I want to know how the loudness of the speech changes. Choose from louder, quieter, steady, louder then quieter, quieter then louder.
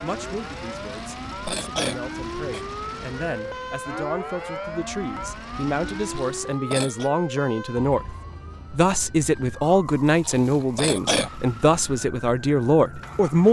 louder.